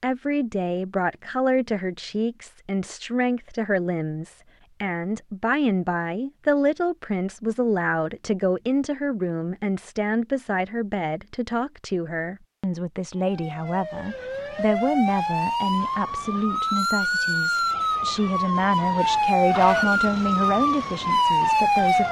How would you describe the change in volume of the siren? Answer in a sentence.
The loudness of the siren goes up.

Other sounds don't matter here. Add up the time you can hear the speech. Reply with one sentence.
The speech can be heard for 22 seconds in total.